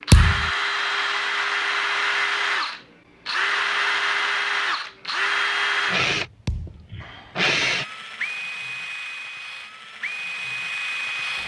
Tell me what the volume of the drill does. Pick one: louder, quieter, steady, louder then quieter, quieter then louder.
quieter.